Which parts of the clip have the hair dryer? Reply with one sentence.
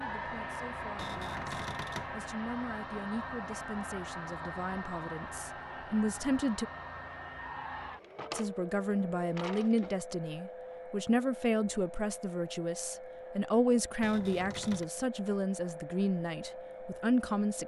You can hear the hair dryer from 0.0 to 17.6 s.